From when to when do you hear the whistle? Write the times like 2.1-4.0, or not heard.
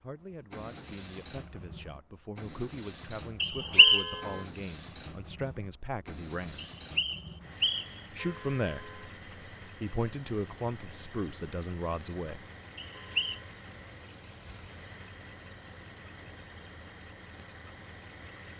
3.4-4.1, 6.5-8.0, 12.9-13.4.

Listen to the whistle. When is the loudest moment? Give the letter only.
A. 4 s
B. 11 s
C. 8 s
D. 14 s
A.